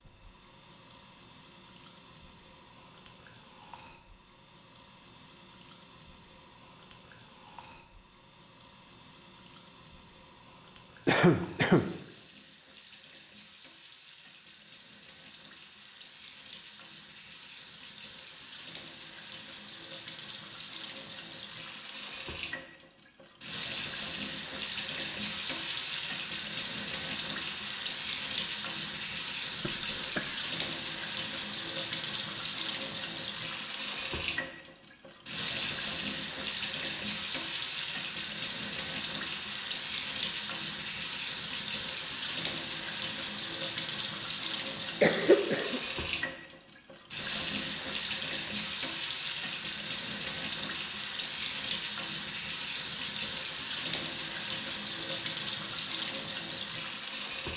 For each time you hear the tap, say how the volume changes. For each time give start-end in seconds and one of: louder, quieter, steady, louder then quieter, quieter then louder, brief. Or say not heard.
0.0-57.5 louder.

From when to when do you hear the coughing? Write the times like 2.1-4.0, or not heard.
11.1-11.8, 29.6-30.4, 45.0-45.8.